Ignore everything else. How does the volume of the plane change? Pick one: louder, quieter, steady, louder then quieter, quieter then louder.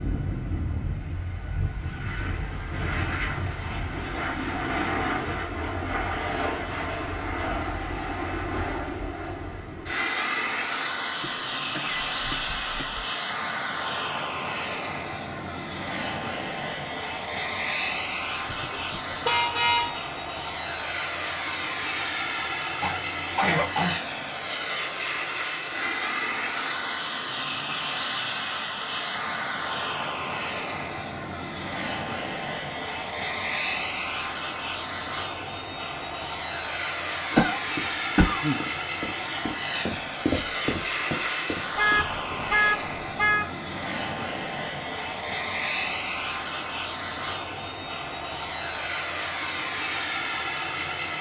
steady.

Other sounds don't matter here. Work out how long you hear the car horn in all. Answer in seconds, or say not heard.
3 s.